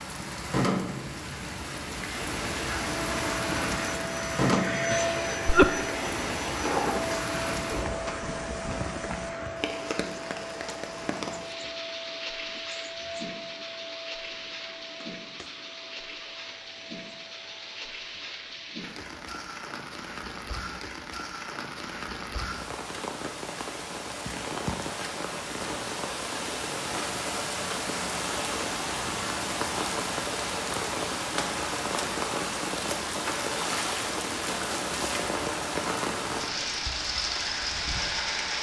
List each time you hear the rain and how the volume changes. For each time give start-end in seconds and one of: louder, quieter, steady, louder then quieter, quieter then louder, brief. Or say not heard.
0.0-38.5 quieter then louder.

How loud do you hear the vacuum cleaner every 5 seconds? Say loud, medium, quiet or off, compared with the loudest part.
loud, loud, medium, quiet, off, off, off, off.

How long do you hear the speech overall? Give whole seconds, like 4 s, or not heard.
not heard.